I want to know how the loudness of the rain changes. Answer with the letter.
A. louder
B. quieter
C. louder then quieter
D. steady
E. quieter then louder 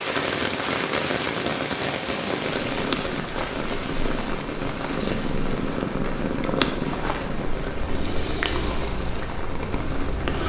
B.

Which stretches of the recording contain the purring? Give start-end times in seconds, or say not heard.
2.5-10.4.